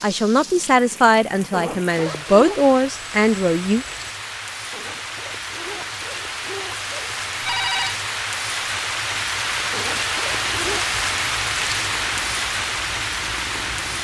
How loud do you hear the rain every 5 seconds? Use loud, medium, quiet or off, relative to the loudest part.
medium, loud, loud.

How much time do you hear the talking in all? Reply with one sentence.
You can hear the talking for 4 seconds altogether.